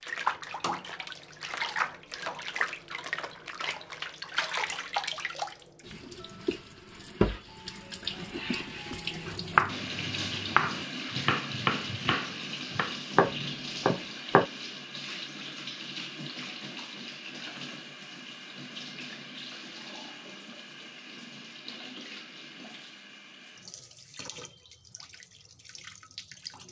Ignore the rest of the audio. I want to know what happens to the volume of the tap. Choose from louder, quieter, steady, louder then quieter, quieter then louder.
quieter.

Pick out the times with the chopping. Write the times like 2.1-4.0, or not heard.
9.2-14.4.